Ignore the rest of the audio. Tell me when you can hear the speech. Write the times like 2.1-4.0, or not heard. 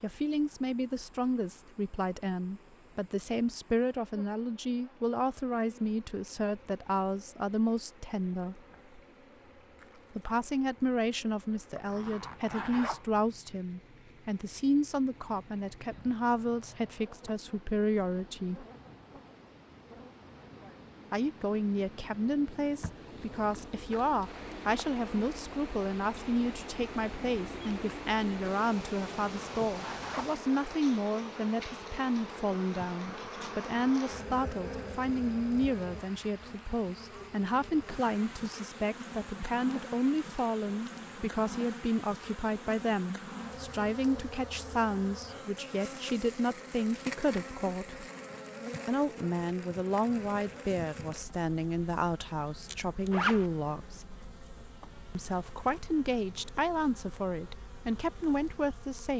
0.0-8.6, 10.2-18.6, 21.1-48.0, 48.9-54.1, 55.1-59.1.